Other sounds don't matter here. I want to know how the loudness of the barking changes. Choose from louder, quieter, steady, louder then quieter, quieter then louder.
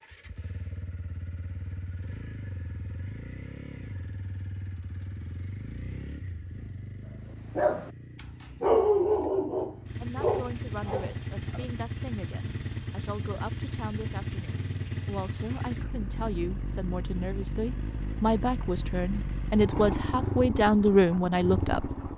louder then quieter.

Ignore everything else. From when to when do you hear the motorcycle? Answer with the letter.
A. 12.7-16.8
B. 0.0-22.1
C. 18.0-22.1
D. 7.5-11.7
B.